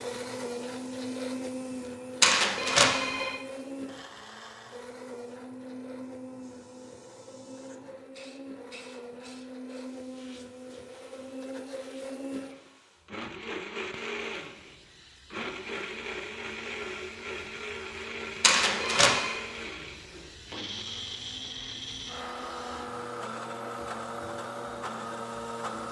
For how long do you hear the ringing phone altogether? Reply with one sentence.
The ringing phone can be heard for 2 seconds in total.